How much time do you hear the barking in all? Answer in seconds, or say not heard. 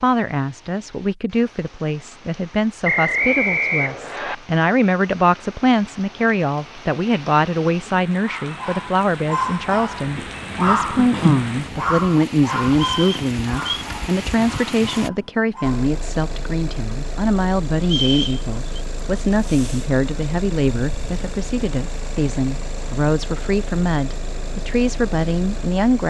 8 s.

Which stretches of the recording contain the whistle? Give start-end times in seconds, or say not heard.
2.8-4.3, 12.8-13.8, 17.8-18.8.